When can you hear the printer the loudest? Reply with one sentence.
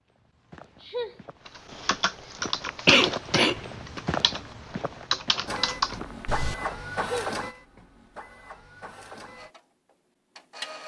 The loudest moment of the printer is at 7 seconds.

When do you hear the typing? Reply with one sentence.
The typing can be heard from 1.4 to 6.5 s.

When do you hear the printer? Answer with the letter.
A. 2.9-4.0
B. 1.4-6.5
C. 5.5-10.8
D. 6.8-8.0
C.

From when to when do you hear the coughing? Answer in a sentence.
You can hear the coughing from 2.9 to 4.0 s.